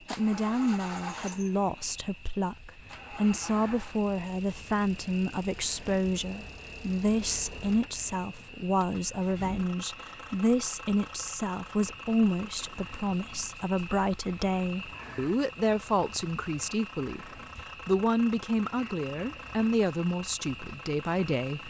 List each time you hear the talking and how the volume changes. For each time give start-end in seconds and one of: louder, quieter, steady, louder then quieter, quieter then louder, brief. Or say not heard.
0.1-21.6 steady.